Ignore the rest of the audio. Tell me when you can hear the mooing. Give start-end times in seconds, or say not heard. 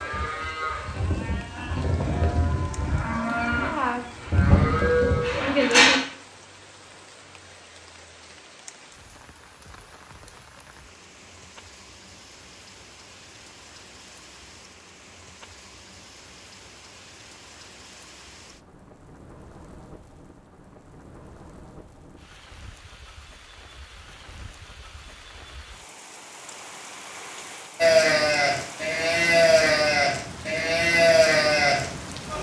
0.0-6.0, 27.8-32.3.